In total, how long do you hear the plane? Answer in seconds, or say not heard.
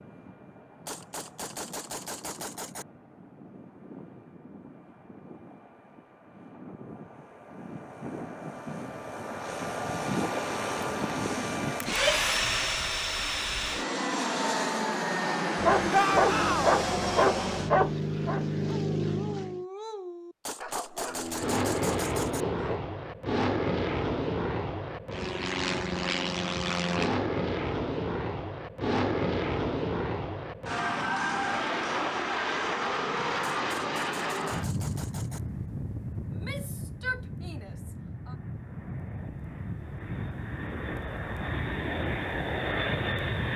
42 s.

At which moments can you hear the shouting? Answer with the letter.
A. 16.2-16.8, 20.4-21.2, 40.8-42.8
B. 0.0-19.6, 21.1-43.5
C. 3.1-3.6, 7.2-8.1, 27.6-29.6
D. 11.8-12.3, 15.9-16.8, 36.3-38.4
D.